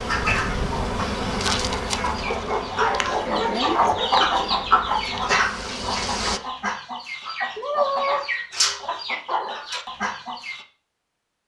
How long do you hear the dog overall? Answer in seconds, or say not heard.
2 s.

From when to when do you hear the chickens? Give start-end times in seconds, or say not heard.
0.1-10.7.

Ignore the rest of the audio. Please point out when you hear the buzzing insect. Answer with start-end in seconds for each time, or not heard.
0.0-6.4.